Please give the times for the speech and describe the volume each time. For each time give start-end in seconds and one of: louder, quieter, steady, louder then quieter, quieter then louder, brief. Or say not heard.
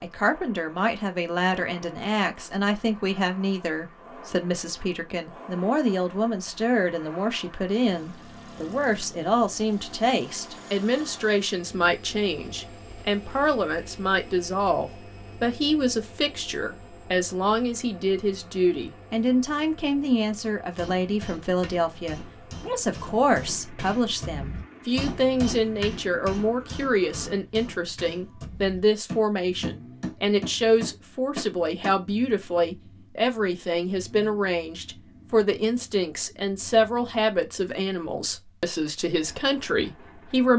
0.0-40.5 steady.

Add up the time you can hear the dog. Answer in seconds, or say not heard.
not heard.